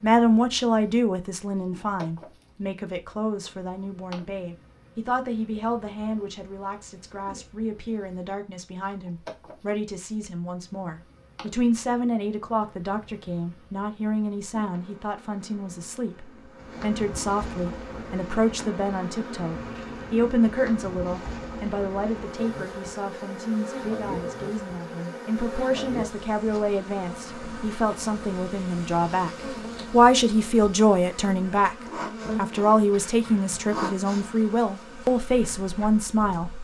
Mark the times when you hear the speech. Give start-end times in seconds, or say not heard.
0.0-29.3, 29.9-31.8, 32.4-36.5.